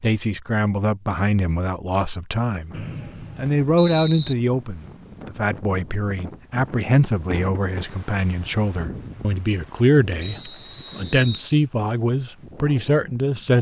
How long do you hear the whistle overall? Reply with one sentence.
The whistle can be heard for 3 seconds in total.